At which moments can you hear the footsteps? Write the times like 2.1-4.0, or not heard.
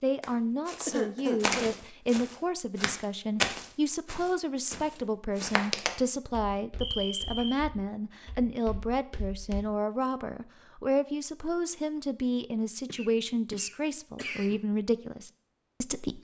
0.2-9.6.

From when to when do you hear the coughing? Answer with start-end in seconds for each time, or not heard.
0.8-1.6, 6.8-7.7, 12.8-14.6.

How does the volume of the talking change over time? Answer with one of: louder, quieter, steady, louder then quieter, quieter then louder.
steady.